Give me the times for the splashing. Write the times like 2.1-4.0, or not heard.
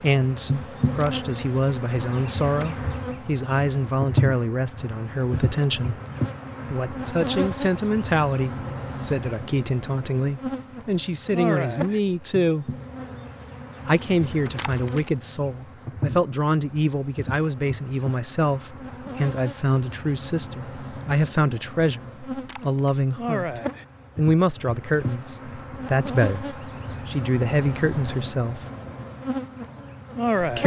0.9-1.4, 14.6-15.2, 22.4-23.1.